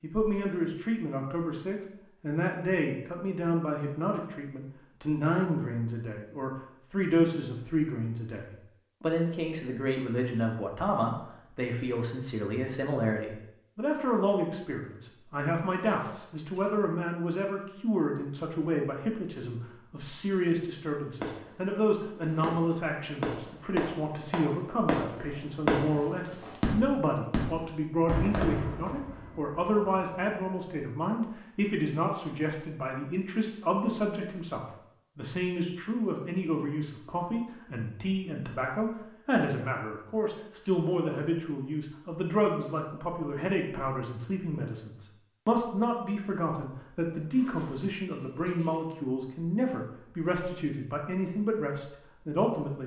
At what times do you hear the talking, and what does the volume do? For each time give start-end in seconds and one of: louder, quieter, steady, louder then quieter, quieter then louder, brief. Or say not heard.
0.0-52.8 steady.